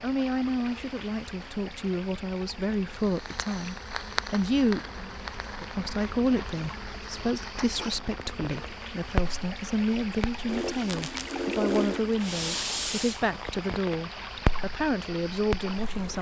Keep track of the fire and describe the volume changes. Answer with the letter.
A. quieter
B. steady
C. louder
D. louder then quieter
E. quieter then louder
E.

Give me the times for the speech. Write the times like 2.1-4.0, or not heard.
0.0-16.1.